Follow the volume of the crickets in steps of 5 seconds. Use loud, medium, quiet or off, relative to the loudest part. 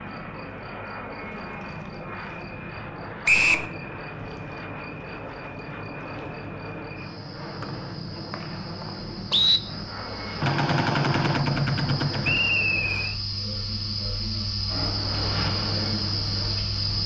quiet, quiet, medium, loud.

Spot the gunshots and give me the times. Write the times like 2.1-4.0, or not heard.
10.4-12.4.